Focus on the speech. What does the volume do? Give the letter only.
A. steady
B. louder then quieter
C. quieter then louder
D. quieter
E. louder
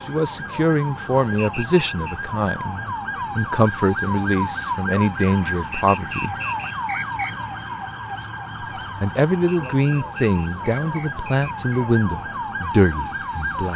A.